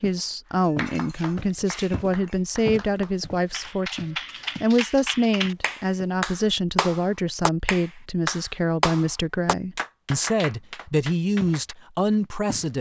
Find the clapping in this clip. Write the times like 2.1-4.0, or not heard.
0.8-11.8.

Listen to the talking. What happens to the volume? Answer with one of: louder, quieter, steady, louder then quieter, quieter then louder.
steady.